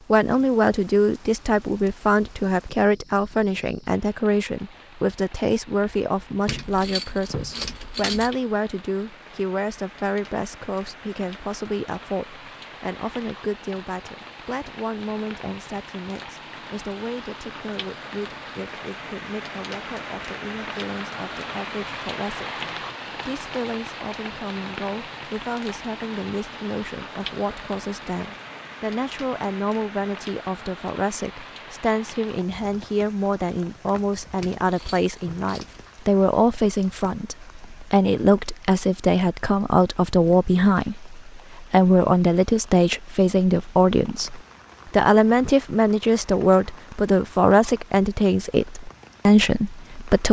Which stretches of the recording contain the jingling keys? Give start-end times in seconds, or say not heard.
6.5-8.4, 34.4-35.9.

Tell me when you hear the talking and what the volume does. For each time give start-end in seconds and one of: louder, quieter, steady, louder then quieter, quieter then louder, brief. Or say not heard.
0.1-50.2 quieter then louder.